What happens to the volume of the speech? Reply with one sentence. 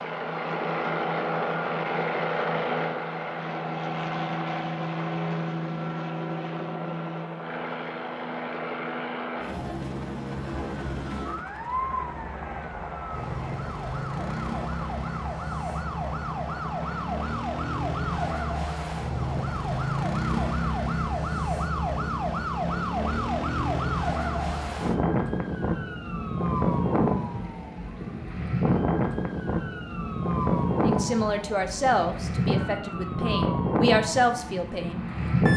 The volume of the speech goes down, then up.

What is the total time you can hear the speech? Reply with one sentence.
You can hear the speech for 4 seconds altogether.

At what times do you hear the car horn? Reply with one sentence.
The car horn can't be heard in this clip.